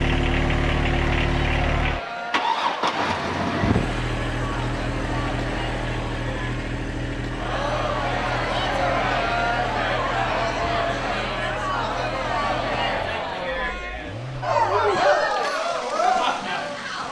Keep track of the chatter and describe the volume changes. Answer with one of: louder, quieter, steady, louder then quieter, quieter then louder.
louder.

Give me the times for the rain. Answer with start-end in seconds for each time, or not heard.
not heard.